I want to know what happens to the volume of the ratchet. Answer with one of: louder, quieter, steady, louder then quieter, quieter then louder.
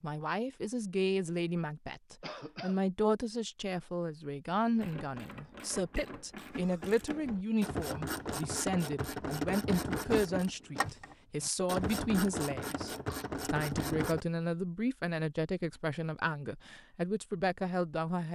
louder.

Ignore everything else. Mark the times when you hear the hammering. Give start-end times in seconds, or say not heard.
not heard.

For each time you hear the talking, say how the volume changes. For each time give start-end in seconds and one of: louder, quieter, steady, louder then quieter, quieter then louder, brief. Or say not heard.
0.0-18.2 steady.